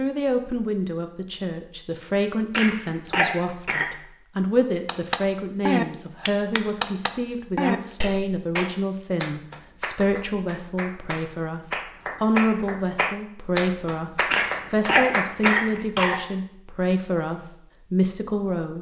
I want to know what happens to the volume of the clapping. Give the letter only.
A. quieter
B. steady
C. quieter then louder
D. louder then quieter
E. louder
C.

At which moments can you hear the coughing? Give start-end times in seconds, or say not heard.
2.5-3.9, 14.3-16.2.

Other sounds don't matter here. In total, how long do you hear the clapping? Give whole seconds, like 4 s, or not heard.
11 s.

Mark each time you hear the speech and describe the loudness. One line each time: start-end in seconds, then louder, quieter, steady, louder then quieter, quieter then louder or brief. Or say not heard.
0.0-18.7 steady.